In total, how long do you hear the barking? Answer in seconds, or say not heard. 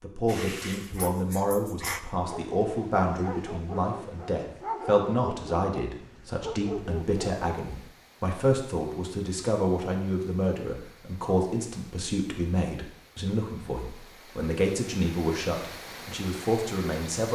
8 s.